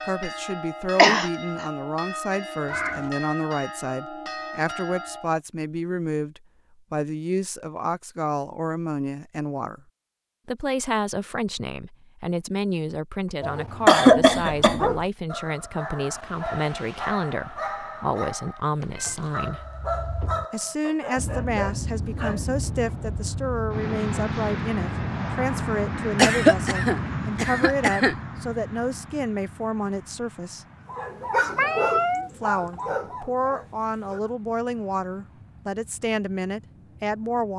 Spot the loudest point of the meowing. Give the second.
32 s.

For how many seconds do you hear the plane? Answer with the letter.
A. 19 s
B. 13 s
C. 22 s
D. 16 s
D.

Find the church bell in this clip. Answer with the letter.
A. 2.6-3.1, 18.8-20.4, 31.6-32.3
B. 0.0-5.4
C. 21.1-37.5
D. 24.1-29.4
B.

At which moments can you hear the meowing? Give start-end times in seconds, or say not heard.
2.6-3.1, 18.8-20.4, 31.6-32.3.